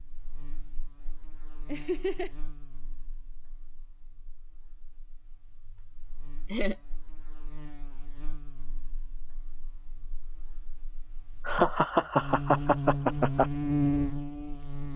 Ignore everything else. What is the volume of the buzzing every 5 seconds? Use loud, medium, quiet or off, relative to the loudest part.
quiet, quiet, loud.